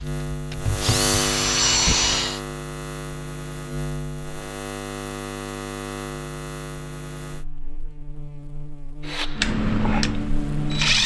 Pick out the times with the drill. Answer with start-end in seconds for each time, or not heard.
0.0-2.4, 9.1-11.0.